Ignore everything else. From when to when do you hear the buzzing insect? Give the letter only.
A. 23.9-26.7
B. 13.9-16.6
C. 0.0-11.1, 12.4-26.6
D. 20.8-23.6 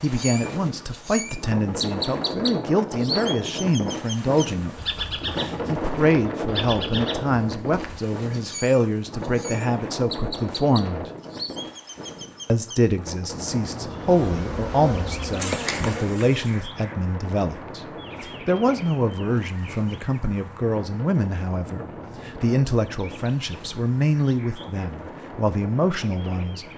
B.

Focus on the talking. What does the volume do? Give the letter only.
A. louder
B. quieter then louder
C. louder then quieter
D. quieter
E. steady
E.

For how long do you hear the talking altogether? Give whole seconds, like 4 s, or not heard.
25 s.